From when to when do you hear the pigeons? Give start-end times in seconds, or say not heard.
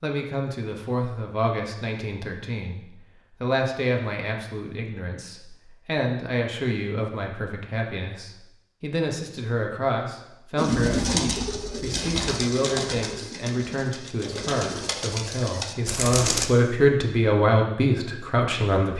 10.6-16.5.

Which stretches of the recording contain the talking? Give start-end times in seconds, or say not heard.
0.0-18.9.